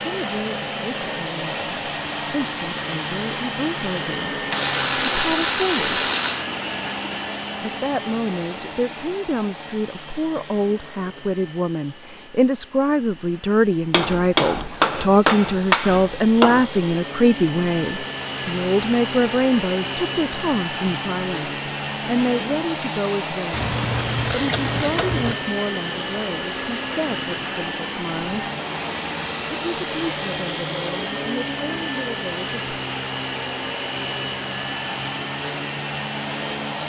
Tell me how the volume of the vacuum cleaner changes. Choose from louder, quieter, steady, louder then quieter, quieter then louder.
quieter then louder.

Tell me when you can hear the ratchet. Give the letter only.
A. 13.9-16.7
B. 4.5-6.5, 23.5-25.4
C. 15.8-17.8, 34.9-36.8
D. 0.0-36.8
B.